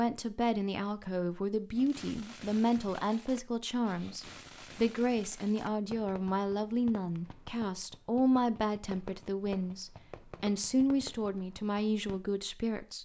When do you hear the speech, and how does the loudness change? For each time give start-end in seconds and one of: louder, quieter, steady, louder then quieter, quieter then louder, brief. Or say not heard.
0.0-13.0 steady.